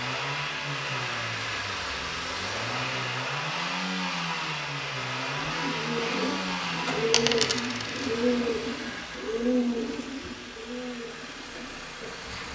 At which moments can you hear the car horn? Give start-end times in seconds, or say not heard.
not heard.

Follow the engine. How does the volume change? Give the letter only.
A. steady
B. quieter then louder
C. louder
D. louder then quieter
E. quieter
E.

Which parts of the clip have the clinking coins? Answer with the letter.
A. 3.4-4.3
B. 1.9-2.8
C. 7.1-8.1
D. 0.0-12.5
C.